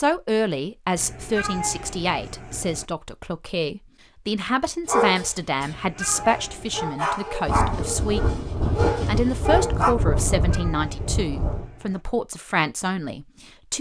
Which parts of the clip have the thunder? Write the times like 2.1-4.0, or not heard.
7.5-11.7.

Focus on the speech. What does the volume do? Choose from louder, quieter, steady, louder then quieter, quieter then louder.
steady.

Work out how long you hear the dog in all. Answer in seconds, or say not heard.
5 s.